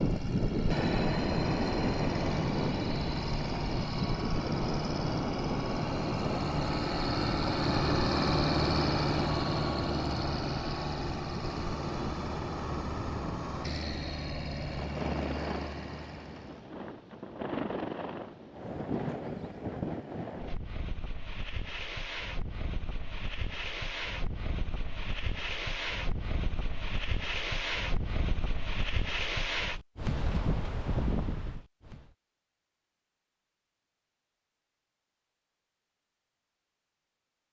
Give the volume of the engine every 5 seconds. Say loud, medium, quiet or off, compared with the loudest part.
medium, loud, medium, medium, off, off, off, off.